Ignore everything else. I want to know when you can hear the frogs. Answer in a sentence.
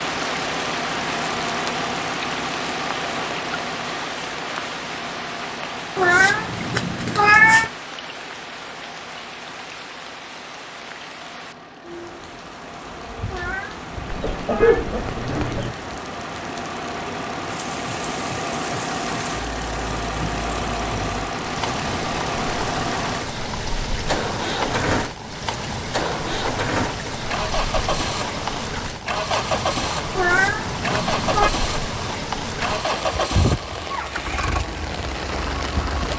The frogs can't be heard in this clip.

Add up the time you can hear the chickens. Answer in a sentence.
The chickens can be heard for 2 seconds in total.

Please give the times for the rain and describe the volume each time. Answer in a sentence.
You can hear the rain from 0.0 to 36.1 s, getting quieter then louder.